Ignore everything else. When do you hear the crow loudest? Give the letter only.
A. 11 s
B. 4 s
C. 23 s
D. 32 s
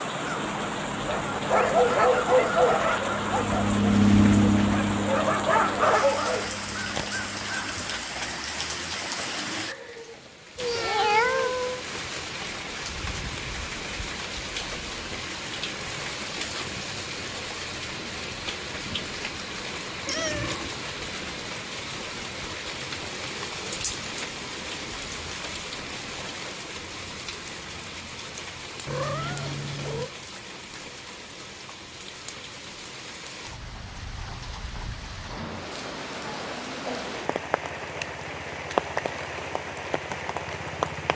B.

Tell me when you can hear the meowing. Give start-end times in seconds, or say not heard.
10.6-11.8, 20.1-20.8, 28.9-30.1.